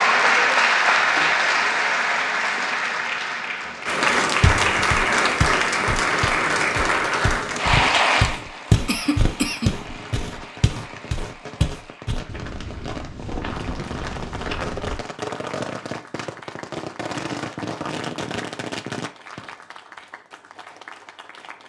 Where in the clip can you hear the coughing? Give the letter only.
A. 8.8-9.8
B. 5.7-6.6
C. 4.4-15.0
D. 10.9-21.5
A.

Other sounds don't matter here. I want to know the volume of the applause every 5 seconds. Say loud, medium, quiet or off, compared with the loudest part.
loud, loud, quiet, quiet, quiet.